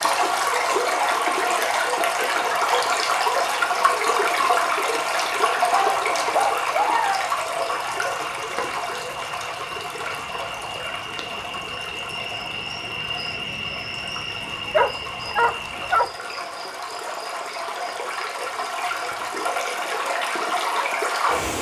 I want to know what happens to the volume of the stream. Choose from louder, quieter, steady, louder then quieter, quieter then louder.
quieter then louder.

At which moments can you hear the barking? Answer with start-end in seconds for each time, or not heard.
5.7-7.3, 14.7-16.1.